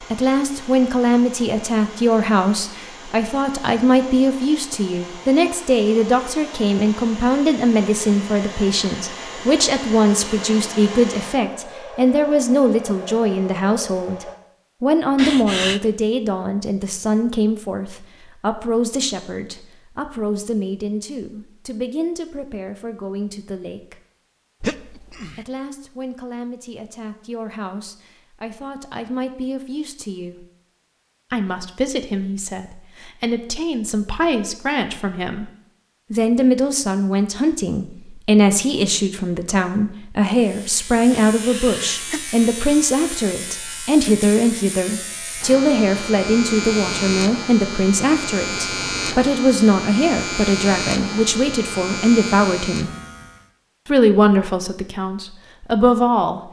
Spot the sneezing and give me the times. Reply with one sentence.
The sneezing can be heard from 15.2 to 15.8 s, from 24.6 to 25.4 s and from 41.2 to 42.2 s.